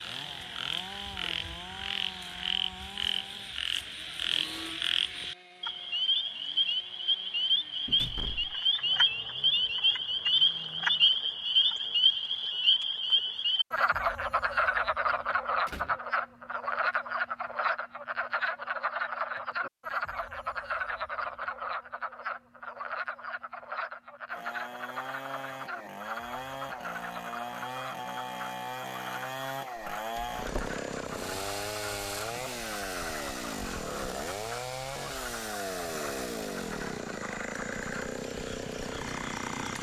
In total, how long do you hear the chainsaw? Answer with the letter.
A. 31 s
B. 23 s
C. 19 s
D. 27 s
D.